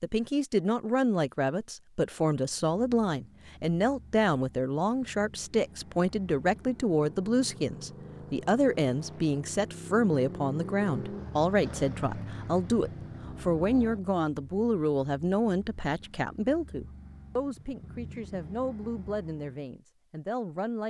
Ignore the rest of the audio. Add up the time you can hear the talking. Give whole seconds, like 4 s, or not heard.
21 s.